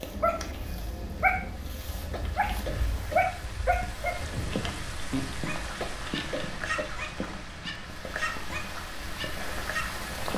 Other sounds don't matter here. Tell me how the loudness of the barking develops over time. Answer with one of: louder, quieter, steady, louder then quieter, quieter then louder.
quieter.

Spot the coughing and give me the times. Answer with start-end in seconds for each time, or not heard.
2.1-3.4, 5.8-7.2.